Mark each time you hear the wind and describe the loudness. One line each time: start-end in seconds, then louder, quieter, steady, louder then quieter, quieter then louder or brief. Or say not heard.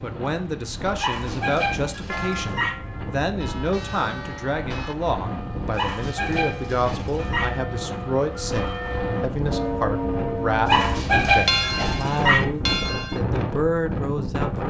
0.0-14.6 louder.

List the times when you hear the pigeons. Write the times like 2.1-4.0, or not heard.
not heard.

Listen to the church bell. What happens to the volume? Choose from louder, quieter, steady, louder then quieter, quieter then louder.
louder.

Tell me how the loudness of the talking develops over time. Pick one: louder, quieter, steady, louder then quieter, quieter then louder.
steady.